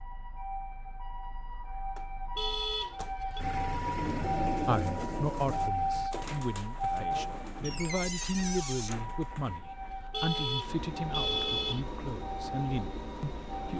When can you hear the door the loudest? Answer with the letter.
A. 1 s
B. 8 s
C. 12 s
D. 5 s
B.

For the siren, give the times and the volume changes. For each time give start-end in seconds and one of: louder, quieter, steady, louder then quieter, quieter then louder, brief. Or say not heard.
0.0-13.7 louder then quieter.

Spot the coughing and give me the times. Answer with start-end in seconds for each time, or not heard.
not heard.